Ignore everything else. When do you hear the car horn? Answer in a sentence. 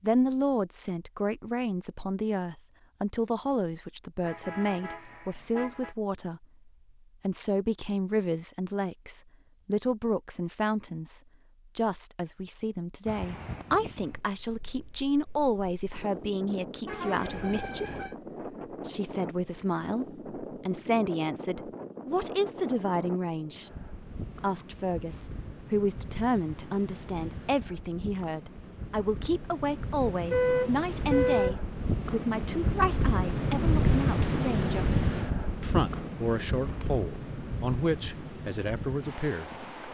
The car horn can be heard from 4.2 to 6.0 s, from 16.9 to 18.1 s and from 30.1 to 31.6 s.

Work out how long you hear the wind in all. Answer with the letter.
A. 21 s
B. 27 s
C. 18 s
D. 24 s
B.